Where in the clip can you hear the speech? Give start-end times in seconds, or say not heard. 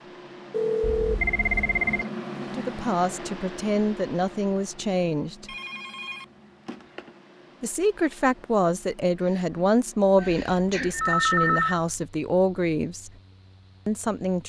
2.4-5.5, 7.6-13.1, 13.8-14.4.